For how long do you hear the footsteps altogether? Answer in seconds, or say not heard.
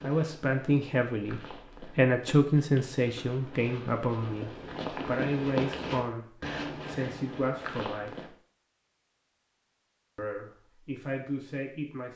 8 s.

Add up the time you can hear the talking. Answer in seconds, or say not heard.
10 s.